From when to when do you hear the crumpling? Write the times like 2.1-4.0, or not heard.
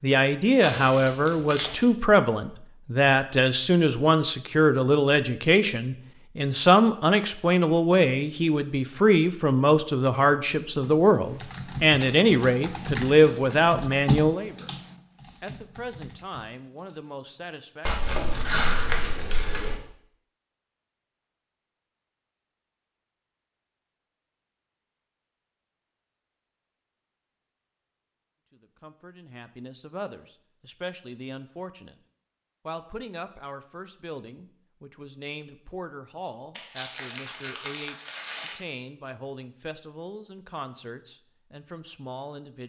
0.6-1.9, 17.9-19.8, 36.5-38.5.